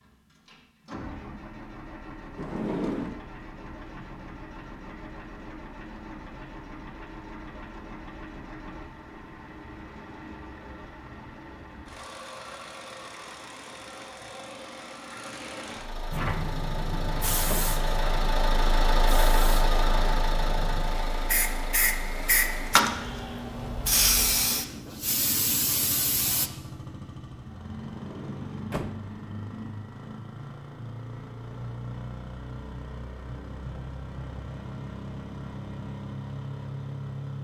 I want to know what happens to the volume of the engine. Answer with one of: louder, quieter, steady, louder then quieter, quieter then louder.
louder then quieter.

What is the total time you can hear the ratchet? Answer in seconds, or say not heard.
not heard.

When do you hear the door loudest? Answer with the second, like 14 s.
3 s.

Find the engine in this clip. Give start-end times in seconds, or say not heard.
0.0-37.4.